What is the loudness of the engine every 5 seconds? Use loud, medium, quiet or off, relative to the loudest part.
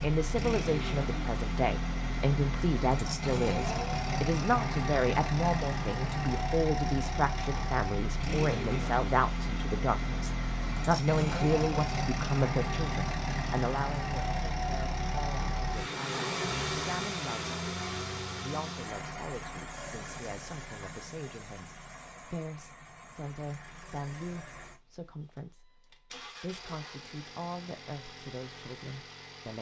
loud, loud, loud, loud, quiet, quiet.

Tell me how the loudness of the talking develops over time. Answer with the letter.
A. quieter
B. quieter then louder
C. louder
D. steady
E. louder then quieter
A.